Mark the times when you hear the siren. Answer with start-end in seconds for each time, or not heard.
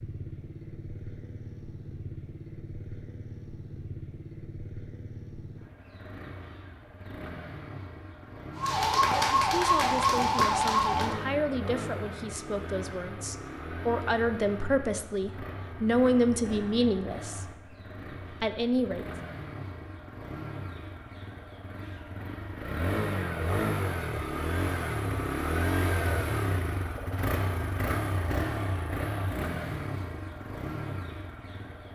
8.6-11.2.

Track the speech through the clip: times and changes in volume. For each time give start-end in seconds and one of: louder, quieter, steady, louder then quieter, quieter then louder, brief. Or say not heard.
9.1-17.4 louder
18.3-19.1 brief.